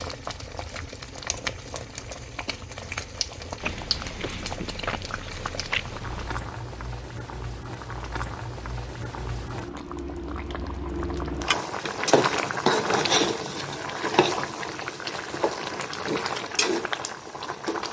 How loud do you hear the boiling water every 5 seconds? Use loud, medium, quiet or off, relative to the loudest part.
medium, medium, loud, loud.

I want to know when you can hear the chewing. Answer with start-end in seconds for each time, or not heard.
3.6-6.5.